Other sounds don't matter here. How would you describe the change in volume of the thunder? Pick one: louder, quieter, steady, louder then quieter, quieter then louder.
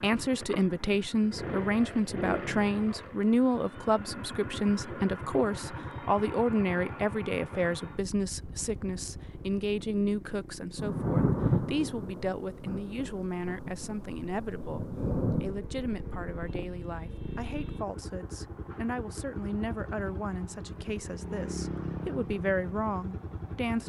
quieter then louder.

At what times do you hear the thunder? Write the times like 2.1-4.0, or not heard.
10.8-15.6.